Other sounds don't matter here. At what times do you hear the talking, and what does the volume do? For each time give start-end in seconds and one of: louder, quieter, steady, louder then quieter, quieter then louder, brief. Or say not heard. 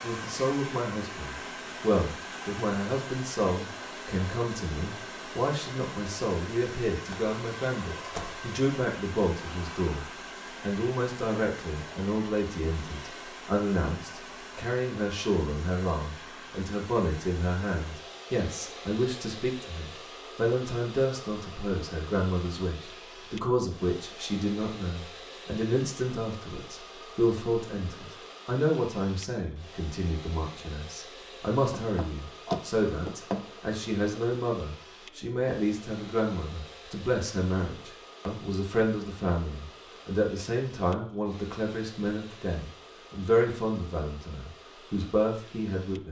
0.0-46.0 steady.